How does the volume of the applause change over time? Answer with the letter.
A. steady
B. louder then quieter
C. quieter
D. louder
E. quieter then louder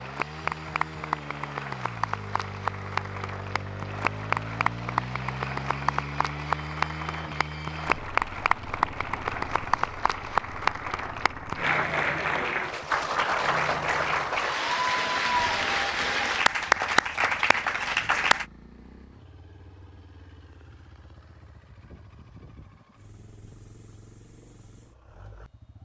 D.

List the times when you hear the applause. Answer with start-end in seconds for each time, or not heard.
0.0-18.4.